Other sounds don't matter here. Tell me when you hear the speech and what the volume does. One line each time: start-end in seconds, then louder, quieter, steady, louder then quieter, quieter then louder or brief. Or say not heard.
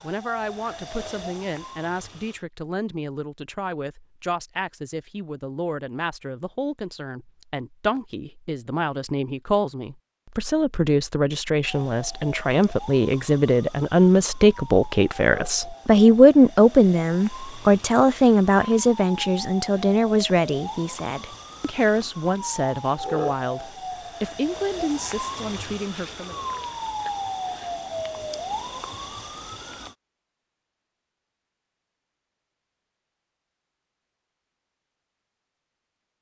0.0-26.4 louder then quieter.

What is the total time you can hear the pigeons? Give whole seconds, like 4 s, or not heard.
not heard.